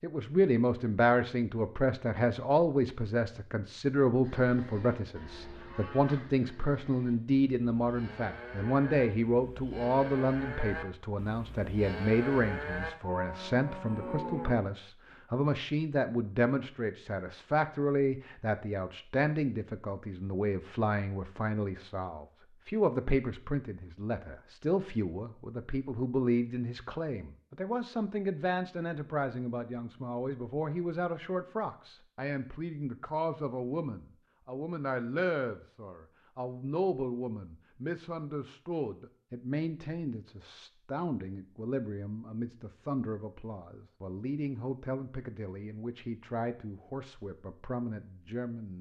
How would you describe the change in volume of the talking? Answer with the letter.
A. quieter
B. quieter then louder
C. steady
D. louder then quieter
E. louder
A.